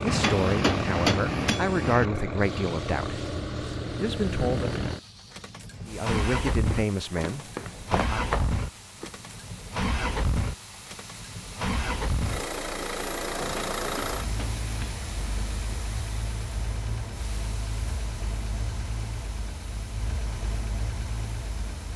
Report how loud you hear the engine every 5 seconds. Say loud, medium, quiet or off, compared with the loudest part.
loud, loud, loud, medium, medium.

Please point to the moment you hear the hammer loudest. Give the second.
1 s.